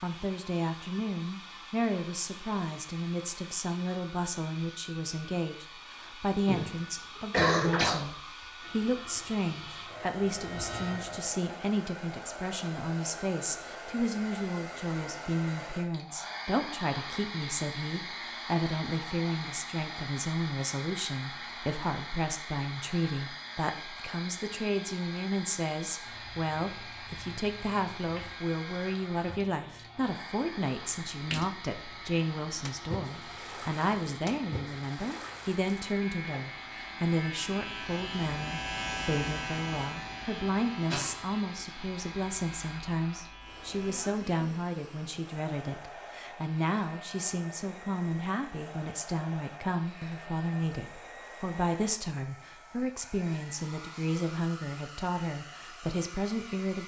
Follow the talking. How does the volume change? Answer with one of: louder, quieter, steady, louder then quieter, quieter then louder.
steady.